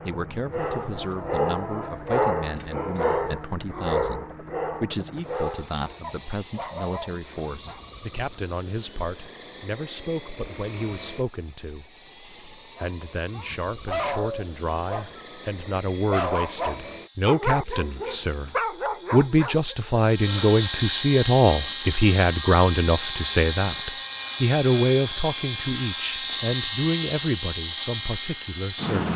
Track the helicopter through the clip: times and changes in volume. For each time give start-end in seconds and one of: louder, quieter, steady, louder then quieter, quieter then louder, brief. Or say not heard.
0.0-29.1 louder.